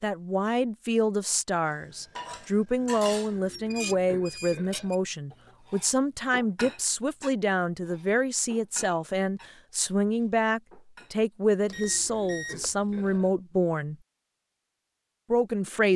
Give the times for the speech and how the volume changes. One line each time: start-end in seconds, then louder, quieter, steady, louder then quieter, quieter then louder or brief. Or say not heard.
0.0-13.9 steady
15.3-15.9 brief.